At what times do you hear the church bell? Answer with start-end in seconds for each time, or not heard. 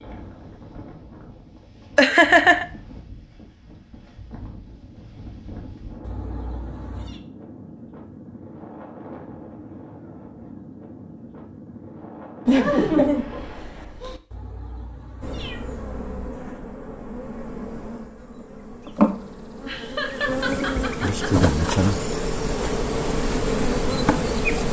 not heard.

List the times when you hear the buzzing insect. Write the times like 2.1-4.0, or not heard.
15.2-24.6.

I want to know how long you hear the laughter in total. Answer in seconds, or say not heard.
5 s.